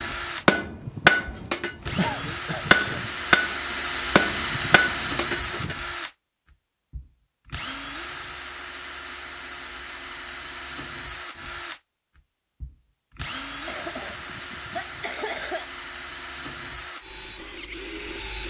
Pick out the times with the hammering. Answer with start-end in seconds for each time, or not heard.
0.0-5.8.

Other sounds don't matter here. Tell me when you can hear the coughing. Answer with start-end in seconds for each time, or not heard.
1.9-3.0, 13.7-15.7.